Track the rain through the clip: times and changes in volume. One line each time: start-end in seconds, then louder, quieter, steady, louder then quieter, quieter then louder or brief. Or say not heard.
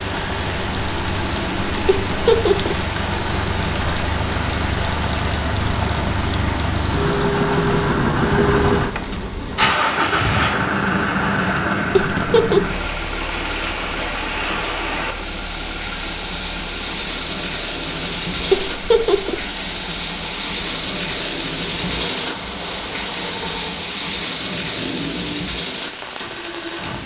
0.0-27.0 steady.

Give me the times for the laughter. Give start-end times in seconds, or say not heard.
1.9-2.8, 11.9-12.7, 18.5-19.4.